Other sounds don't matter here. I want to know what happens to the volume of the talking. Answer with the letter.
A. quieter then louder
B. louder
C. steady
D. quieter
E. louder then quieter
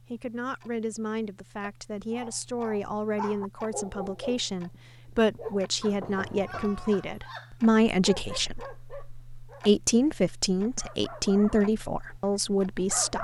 B.